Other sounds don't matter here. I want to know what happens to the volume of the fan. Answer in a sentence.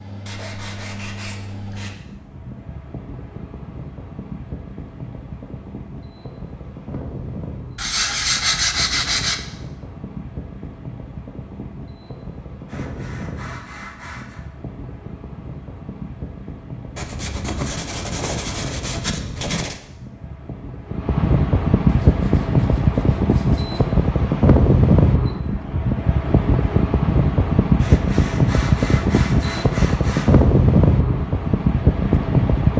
The loudness of the fan goes up.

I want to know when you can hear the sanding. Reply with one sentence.
The sanding can be heard from 0.2 to 1.9 s, from 7.8 to 9.4 s, from 12.7 to 14.4 s, from 16.9 to 19.8 s, from 21.9 to 23.9 s and from 27.8 to 30.4 s.